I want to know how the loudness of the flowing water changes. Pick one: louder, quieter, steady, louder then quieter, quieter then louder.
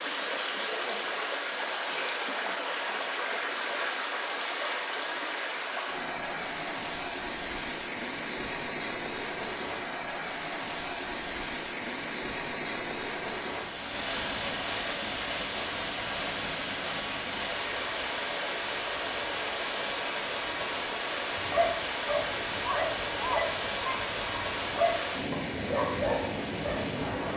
steady.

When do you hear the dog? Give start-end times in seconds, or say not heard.
21.3-26.9.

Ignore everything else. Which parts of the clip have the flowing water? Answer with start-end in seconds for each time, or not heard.
0.0-27.3.